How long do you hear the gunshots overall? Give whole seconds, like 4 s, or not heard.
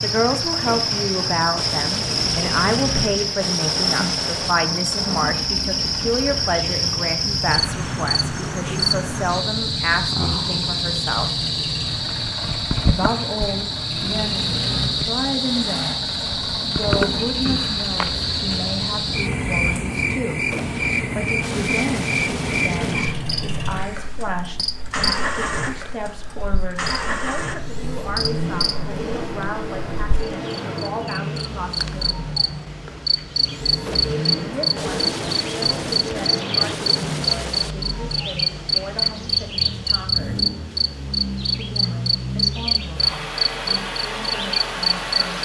11 s.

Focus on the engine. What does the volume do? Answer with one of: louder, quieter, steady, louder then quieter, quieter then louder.
steady.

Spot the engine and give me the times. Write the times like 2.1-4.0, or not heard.
0.0-45.4.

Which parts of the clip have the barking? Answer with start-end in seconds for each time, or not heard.
not heard.